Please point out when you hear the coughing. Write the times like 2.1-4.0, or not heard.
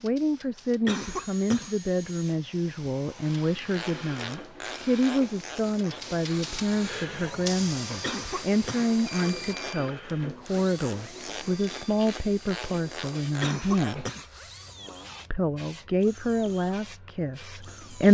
0.8-1.8, 8.0-9.8, 13.4-15.2.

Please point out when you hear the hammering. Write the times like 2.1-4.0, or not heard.
not heard.